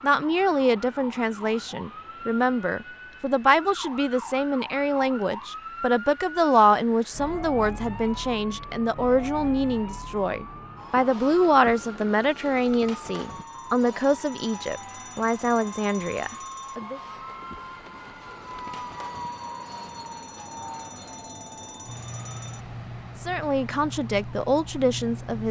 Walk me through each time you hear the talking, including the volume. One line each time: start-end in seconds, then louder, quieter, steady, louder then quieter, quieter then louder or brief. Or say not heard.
0.0-17.0 steady
23.2-25.4 brief.